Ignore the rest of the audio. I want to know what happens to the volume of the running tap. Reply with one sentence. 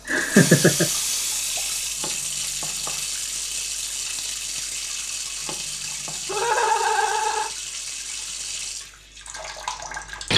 The loudness of the running tap goes down.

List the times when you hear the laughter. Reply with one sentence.
The laughter can be heard from 0.1 to 0.8 s and from 6.2 to 7.5 s.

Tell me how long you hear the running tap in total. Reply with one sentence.
The running tap can be heard for 10 seconds in total.